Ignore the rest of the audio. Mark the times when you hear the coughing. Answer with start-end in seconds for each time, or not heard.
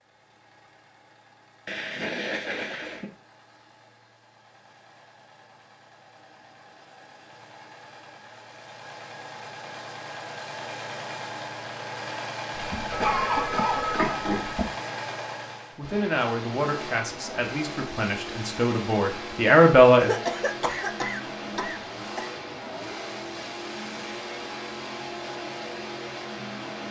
1.6-3.1, 12.7-14.7, 20.0-22.2.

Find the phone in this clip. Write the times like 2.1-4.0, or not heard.
12.7-14.6.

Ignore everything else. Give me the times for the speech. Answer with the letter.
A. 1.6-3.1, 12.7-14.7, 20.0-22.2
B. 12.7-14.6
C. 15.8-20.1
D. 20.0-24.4
C.